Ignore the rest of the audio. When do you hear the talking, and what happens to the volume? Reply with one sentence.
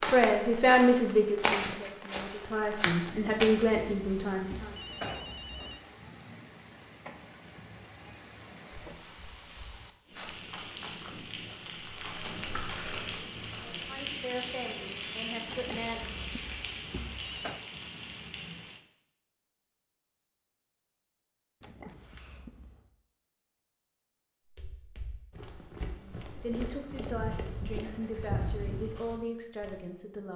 The talking can be heard from 0.1 to 4.7 s, getting quieter then louder; briefly from 13.6 to 16.3 s; and from 26.0 to 30.3 s, at a steady volume.